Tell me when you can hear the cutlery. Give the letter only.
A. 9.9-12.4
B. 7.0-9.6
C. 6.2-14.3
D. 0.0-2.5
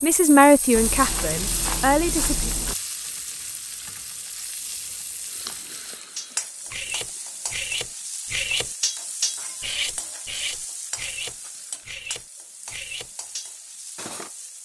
C.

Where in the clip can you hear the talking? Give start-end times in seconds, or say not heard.
0.0-2.5.